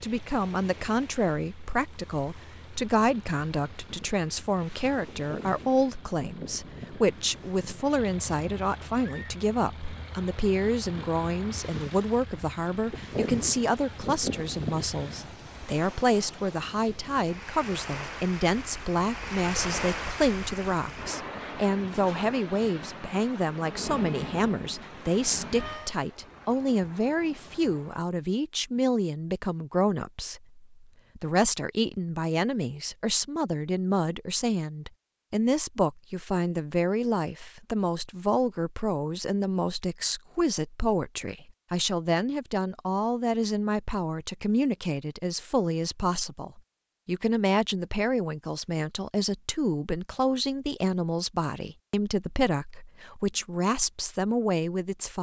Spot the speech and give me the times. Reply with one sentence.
The speech can be heard from 0.0 to 55.1 s.